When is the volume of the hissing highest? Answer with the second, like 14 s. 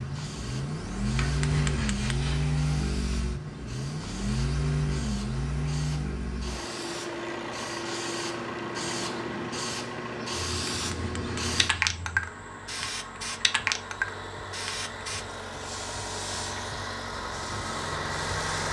12 s.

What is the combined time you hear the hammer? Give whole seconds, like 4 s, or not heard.
3 s.